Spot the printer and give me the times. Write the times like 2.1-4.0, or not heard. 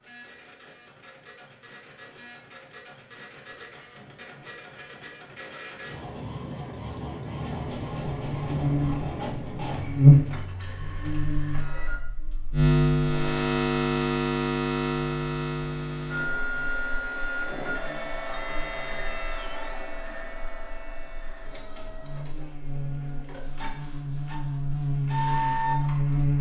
0.0-12.0, 16.1-26.3.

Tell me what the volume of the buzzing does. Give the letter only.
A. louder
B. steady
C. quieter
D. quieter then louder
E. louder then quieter
D.